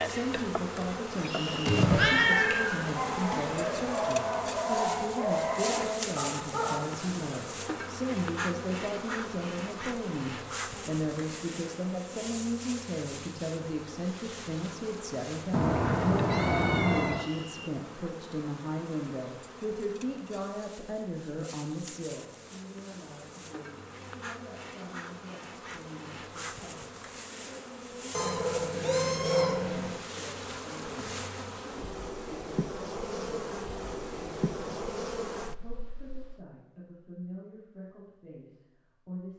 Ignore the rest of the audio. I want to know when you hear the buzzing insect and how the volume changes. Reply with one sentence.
You can hear the buzzing insect from 0.0 to 36.5 s, getting quieter then louder.